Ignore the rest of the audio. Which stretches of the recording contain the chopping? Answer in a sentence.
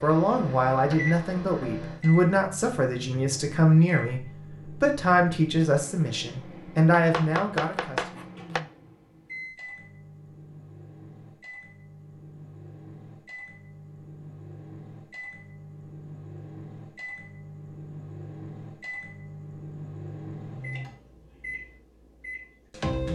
You can hear the chopping from 7.0 to 8.6 s.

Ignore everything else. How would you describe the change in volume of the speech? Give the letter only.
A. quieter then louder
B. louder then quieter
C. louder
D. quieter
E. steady
E.